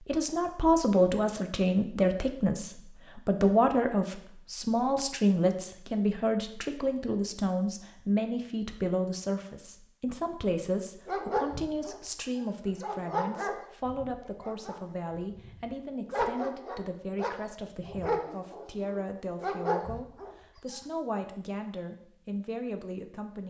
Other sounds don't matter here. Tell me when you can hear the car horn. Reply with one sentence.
You can't hear the car horn here.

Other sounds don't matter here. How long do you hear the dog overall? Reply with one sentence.
You can hear the dog for 10 seconds altogether.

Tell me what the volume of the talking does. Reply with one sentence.
The volume of the talking goes down.